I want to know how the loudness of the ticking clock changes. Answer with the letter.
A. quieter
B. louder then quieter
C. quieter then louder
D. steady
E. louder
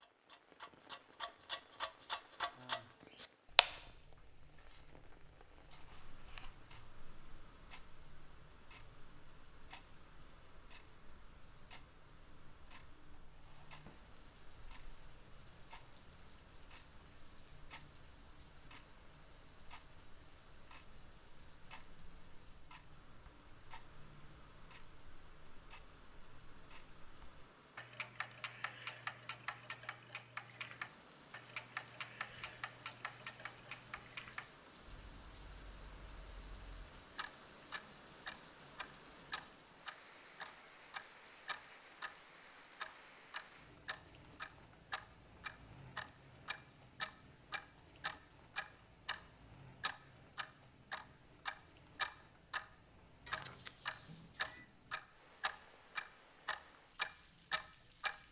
C.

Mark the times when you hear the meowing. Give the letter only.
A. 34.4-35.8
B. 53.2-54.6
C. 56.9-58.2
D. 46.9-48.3
B.